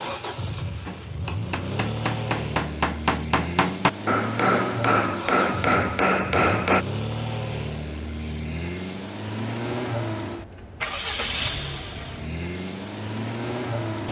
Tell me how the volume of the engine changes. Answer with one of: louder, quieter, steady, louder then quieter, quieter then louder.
steady.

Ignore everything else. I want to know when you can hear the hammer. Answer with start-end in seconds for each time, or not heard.
0.8-6.8.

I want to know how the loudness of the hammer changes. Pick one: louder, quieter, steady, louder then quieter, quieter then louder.
louder.